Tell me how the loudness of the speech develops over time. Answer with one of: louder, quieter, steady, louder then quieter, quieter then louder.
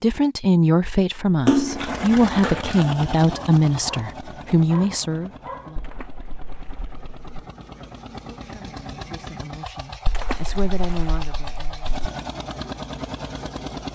quieter then louder.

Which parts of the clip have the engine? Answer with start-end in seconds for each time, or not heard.
1.6-13.8.